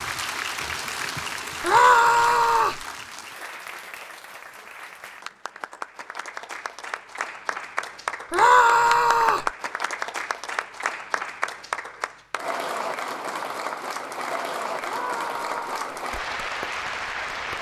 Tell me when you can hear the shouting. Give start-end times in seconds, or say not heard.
1.6-2.8, 8.3-9.5, 14.8-16.0.